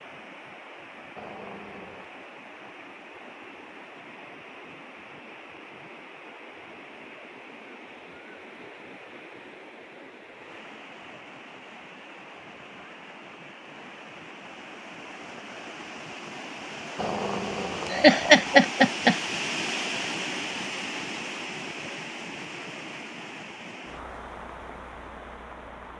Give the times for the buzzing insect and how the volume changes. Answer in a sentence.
You can't hear the buzzing insect here.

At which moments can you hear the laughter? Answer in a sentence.
The laughter can be heard from 17.9 to 19.1 s.